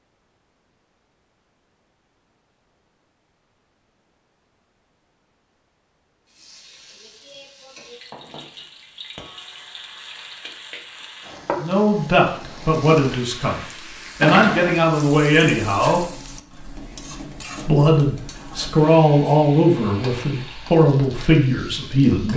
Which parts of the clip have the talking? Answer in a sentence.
You can hear the talking from 11.6 to 13.6 s, from 14.2 to 16.0 s and from 17.6 to 22.3 s.